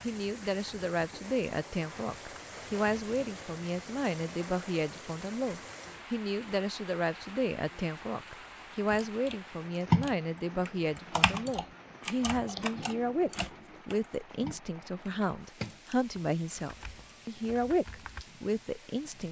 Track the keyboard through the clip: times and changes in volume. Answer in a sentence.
The keyboard can be heard from 8.8 to 18.2 s, getting quieter.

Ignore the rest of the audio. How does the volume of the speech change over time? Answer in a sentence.
The volume of the speech stays about the same.